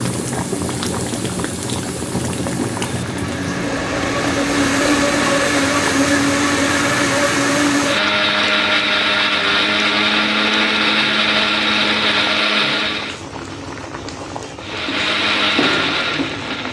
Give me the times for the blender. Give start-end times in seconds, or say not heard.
0.2-13.2, 14.6-16.6.